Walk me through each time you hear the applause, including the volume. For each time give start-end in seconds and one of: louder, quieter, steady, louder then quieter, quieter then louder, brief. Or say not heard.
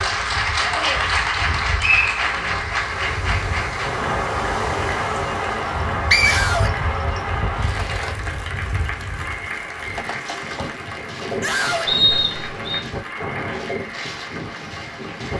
0.0-15.3 quieter.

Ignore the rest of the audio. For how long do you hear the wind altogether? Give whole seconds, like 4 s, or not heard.
15 s.